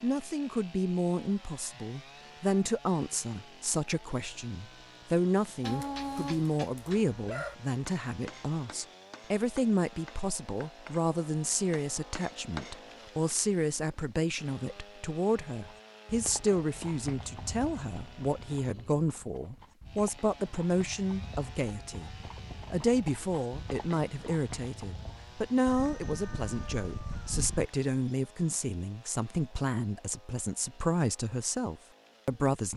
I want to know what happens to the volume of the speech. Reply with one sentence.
The loudness of the speech stays about the same.